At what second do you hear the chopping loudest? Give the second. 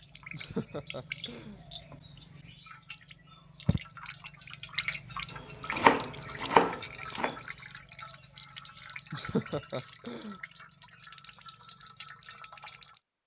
6 s.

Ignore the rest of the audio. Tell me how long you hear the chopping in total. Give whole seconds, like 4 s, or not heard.
2 s.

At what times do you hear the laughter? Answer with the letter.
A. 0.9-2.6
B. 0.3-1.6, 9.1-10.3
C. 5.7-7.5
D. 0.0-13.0
B.